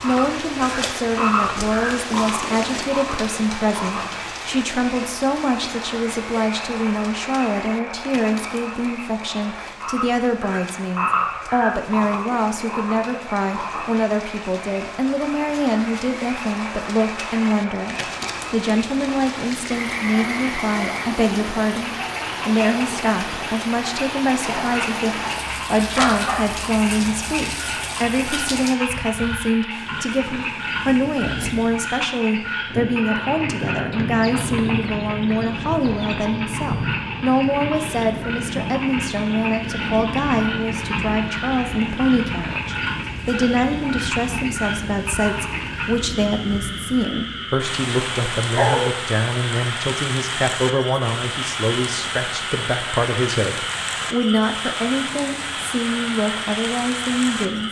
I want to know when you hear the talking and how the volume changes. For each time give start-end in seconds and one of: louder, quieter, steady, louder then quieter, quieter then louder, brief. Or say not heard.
0.0-57.6 steady.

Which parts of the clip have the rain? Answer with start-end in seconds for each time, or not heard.
0.0-57.6.